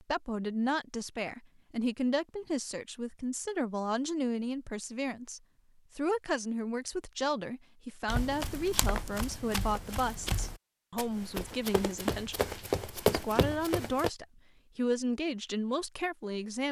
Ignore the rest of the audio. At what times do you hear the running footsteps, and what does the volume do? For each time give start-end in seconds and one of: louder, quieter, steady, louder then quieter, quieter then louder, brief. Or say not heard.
8.1-14.1 louder.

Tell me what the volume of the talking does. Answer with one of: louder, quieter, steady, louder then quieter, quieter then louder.
steady.